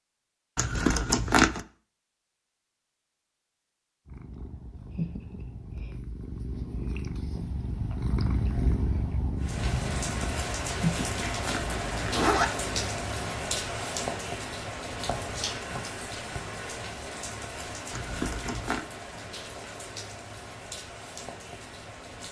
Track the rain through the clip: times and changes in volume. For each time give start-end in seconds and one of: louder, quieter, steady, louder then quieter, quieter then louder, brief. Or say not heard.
9.4-22.2 quieter.